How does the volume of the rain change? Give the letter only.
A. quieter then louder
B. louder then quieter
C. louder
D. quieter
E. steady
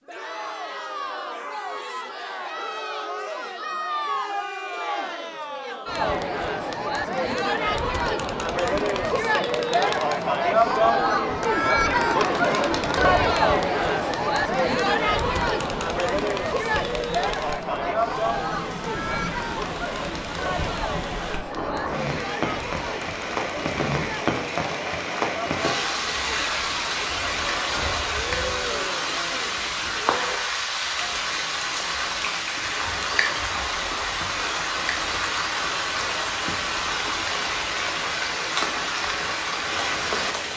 C.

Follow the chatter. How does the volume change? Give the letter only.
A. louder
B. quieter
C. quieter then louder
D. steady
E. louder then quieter
E.